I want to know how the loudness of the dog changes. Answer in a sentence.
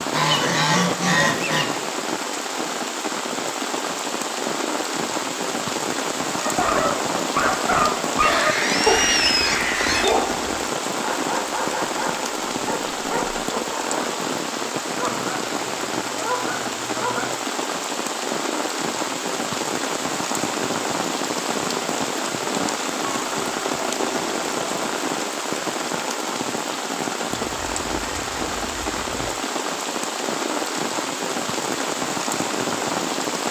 The volume of the dog goes down.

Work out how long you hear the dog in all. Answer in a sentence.
You can hear the dog for 8 seconds altogether.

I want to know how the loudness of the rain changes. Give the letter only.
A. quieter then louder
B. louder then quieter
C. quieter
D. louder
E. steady
E.